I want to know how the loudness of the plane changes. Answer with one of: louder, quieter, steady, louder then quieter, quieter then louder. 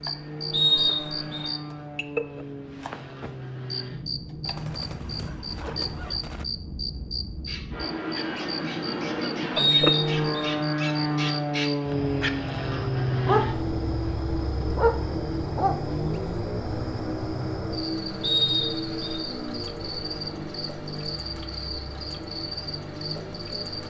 louder then quieter.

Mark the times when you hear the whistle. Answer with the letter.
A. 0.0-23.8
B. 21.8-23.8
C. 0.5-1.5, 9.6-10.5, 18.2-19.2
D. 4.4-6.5
C.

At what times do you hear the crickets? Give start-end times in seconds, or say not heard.
0.0-23.8.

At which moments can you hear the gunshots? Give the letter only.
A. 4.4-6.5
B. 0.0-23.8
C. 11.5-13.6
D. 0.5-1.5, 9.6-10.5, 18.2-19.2
A.